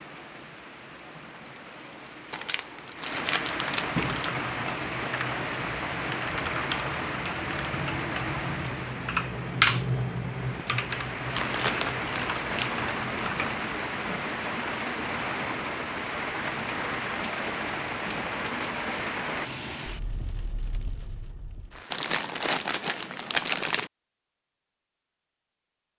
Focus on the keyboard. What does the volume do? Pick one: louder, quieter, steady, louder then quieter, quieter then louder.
louder then quieter.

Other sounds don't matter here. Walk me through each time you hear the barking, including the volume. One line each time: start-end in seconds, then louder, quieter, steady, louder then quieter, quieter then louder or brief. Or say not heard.
not heard.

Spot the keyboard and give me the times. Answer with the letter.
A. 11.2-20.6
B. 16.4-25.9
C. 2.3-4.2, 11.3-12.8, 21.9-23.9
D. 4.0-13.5
D.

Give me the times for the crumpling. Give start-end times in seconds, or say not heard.
2.3-4.2, 11.3-12.8, 21.9-23.9.